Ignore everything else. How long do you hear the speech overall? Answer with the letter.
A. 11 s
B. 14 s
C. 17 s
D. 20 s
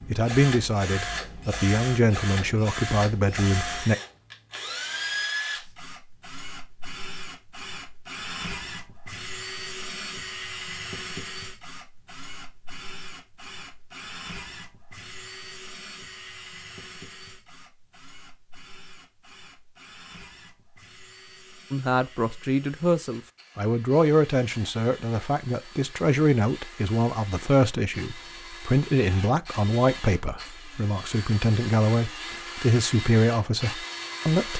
C.